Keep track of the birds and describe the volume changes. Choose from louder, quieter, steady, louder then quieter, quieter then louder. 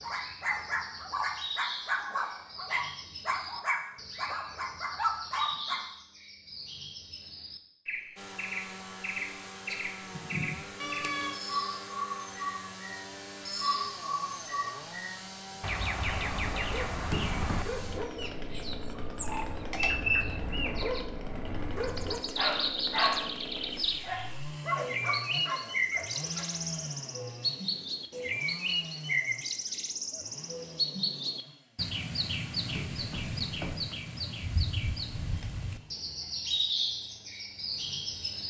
louder.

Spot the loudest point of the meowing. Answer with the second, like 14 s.
11 s.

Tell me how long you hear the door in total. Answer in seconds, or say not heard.
2 s.